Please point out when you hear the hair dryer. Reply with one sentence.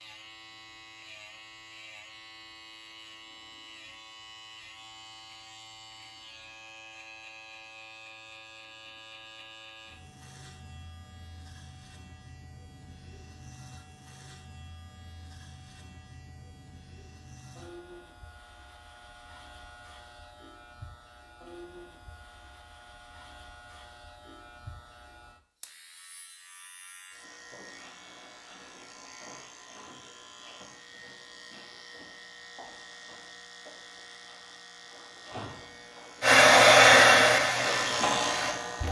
You can hear the hair dryer from 36.2 to 38.8 s.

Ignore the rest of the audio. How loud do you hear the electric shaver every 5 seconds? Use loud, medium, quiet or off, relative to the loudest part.
quiet, quiet, quiet, quiet, quiet, quiet, quiet, loud.